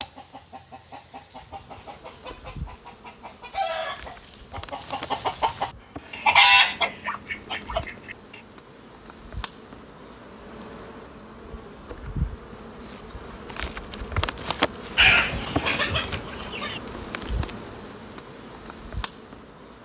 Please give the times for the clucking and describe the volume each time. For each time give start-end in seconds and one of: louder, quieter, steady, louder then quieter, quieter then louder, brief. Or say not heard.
0.0-8.4 louder
14.9-16.8 brief.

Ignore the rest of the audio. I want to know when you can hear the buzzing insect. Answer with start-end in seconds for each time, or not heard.
1.5-19.7.